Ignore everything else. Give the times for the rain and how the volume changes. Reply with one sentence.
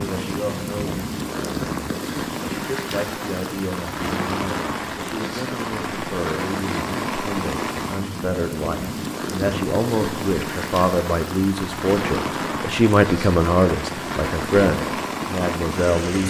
You can hear the rain from 0.0 to 16.2 s, at a steady volume.